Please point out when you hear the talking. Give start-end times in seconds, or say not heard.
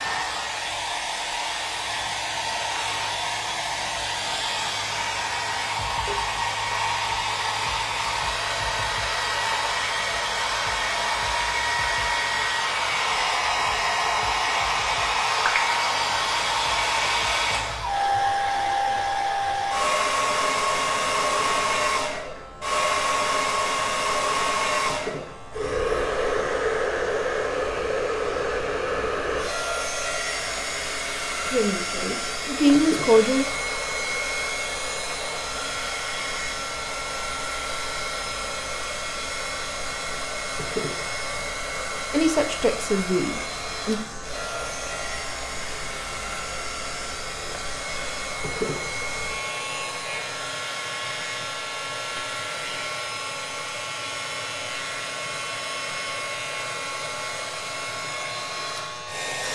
31.4-33.5, 42.1-44.0.